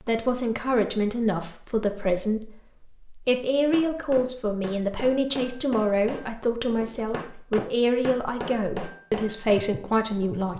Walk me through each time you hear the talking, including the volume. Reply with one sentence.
You can hear the talking from 0.1 to 10.5 s, at a steady volume.